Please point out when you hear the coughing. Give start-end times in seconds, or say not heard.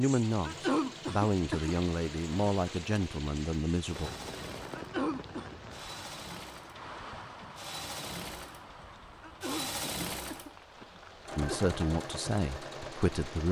0.5-1.8, 4.8-5.5, 9.2-11.7.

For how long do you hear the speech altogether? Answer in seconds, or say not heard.
6 s.